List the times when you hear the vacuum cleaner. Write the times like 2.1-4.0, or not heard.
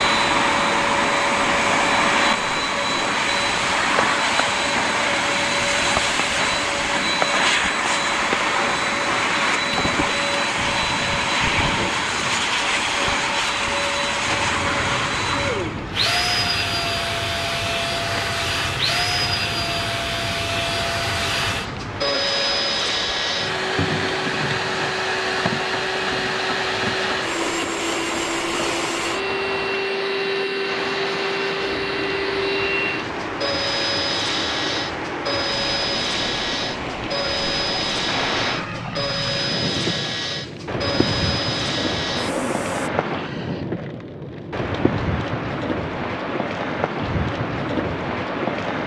0.0-42.9.